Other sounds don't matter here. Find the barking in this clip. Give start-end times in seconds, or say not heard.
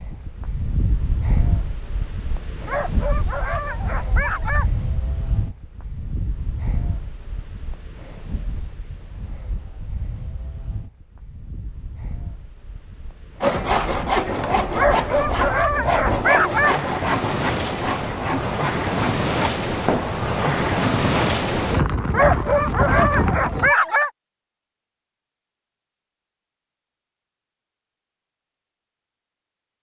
2.6-4.7, 14.8-16.8, 22.1-24.1.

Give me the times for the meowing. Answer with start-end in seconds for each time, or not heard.
not heard.